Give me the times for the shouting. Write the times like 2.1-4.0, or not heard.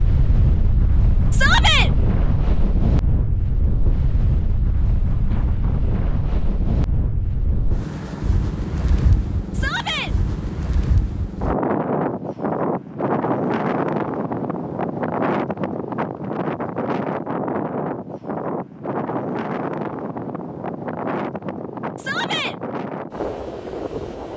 1.3-1.9, 9.5-10.1, 21.9-22.6.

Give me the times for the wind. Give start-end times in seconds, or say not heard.
0.0-24.3.